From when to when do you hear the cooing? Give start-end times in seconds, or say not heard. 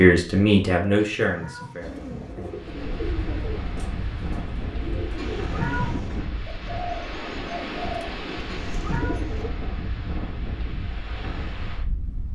1.8-9.5.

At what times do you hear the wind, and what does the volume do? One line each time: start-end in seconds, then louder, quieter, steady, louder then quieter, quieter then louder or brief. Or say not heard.
2.5-12.2 steady.